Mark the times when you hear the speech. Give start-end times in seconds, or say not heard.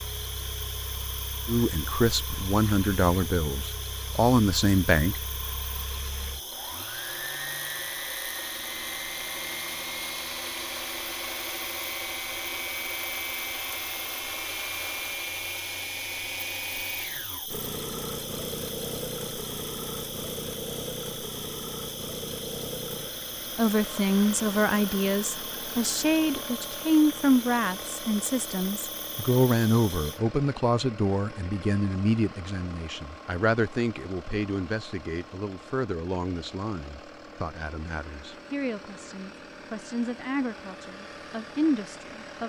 1.4-5.2, 23.6-42.4.